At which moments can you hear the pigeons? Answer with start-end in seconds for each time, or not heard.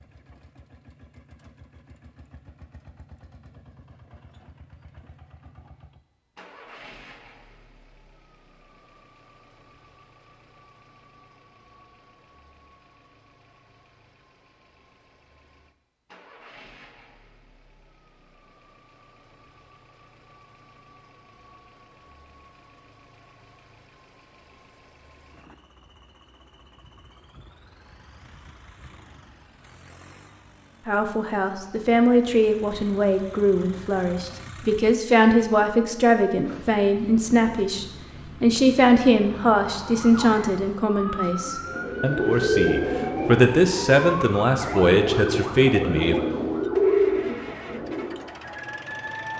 41.6-48.2.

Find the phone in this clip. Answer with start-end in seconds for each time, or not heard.
not heard.